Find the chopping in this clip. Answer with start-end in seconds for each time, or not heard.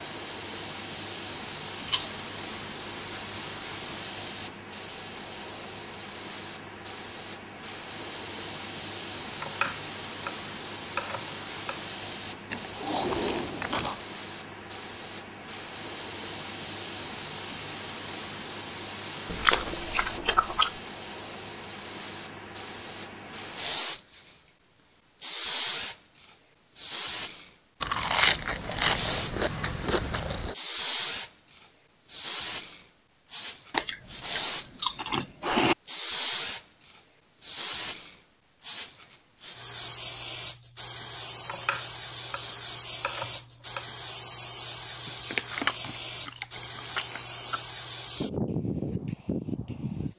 9.2-11.8, 41.3-43.9.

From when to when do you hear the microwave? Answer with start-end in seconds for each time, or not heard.
not heard.